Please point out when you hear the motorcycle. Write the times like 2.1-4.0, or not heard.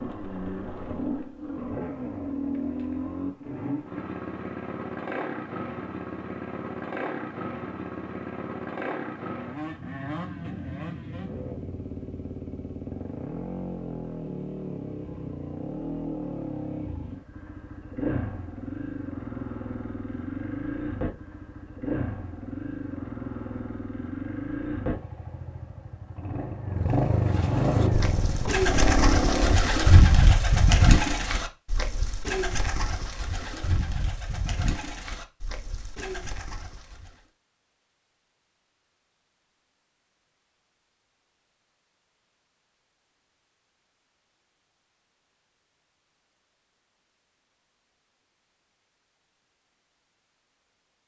0.0-29.6.